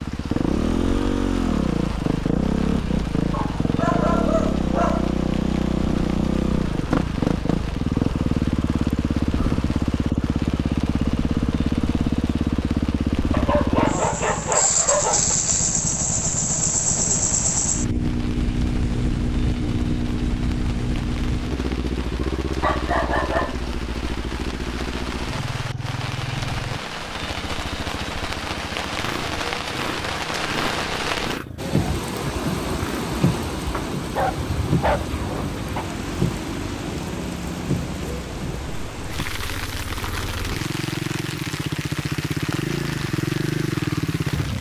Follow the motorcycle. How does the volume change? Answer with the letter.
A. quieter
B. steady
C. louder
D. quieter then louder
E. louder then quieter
D.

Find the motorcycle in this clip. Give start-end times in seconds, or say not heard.
0.0-44.5.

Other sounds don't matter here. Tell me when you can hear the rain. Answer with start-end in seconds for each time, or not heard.
0.0-44.5.